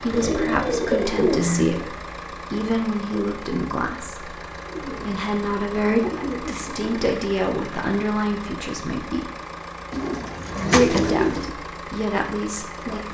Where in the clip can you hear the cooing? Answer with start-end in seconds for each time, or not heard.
0.1-1.9, 4.7-6.9, 9.9-11.5.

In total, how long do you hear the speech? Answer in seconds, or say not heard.
12 s.